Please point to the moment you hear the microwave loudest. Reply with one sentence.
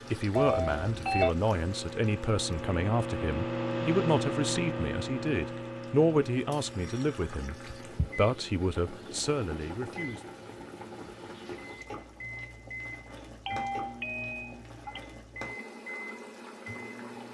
The volume of the microwave peaks at 4 seconds.